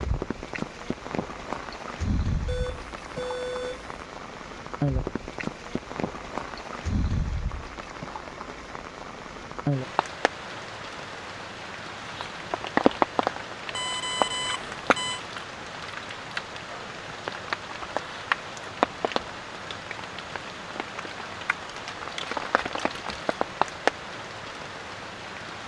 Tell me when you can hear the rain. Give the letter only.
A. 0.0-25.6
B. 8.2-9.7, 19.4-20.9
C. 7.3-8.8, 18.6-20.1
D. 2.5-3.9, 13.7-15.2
A.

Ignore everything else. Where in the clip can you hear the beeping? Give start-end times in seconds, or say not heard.
2.5-3.9, 13.7-15.2.